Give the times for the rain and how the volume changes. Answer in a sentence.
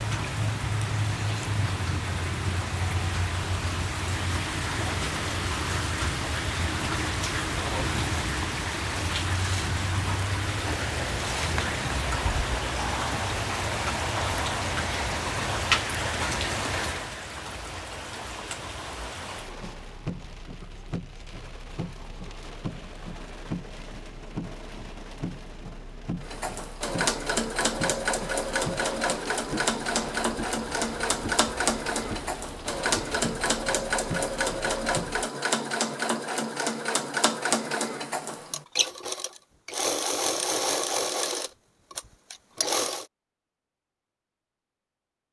The rain can be heard from 0.0 to 35.3 s, getting quieter.